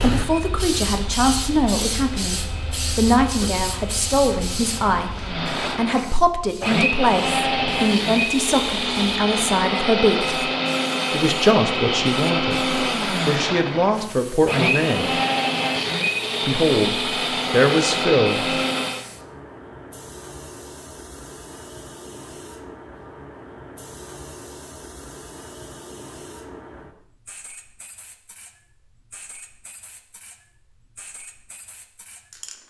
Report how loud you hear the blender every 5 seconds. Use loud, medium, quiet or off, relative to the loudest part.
quiet, loud, loud, loud, off, off, off.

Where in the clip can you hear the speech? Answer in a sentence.
The speech can be heard from 0.0 to 10.4 s, from 11.1 to 15.1 s and from 16.4 to 18.4 s.